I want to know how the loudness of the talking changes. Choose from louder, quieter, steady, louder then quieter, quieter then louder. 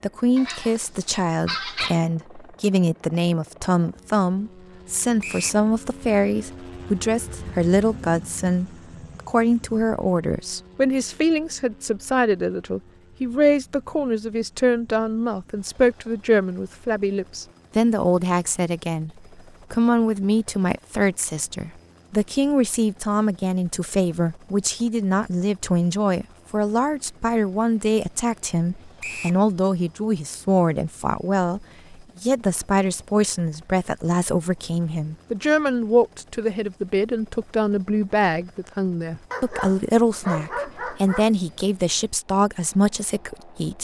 steady.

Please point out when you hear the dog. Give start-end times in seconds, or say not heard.
0.3-2.0, 39.3-41.3.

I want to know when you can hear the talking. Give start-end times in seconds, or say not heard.
0.0-43.7.